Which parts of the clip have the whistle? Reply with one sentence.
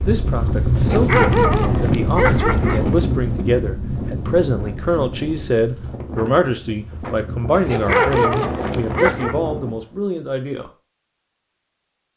You can't hear the whistle here.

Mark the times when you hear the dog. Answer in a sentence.
You can hear the dog from 0.8 to 2.9 s and from 7.5 to 9.3 s.